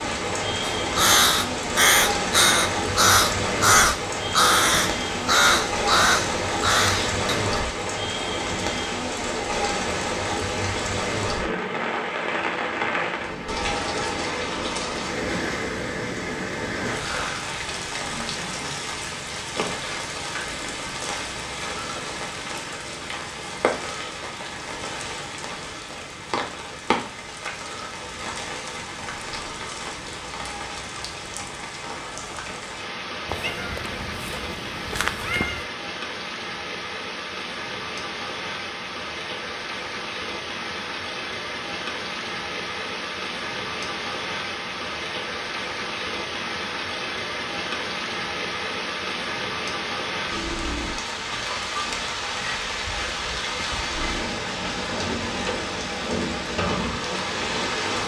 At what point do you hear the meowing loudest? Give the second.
35 s.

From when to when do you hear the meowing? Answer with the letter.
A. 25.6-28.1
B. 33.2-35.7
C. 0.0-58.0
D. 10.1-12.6
B.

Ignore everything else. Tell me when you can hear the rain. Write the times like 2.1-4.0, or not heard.
0.0-58.0.